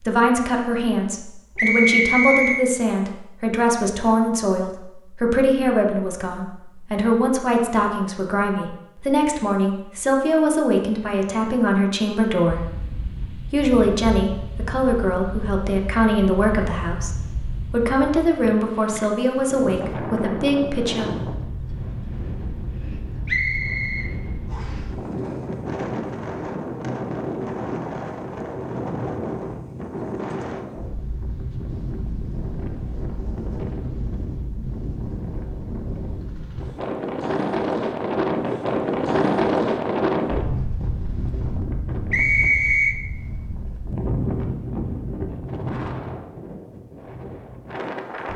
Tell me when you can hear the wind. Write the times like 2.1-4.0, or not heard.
12.4-48.3.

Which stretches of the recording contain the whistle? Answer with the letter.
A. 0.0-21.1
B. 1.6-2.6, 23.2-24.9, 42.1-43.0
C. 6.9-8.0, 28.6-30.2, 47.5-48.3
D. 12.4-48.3
B.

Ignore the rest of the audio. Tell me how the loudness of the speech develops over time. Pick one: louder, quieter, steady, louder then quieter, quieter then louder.
steady.